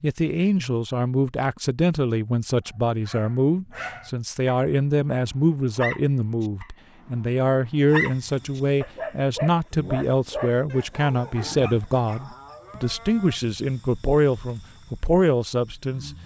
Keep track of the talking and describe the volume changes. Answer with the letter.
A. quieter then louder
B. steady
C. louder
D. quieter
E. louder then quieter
B.